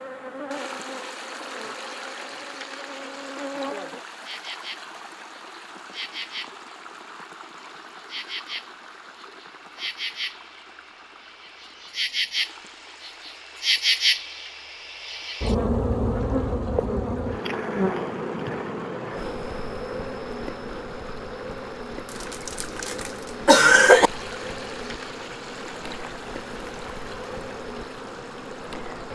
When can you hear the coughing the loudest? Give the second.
24 s.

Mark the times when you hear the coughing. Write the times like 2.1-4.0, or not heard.
22.2-24.1.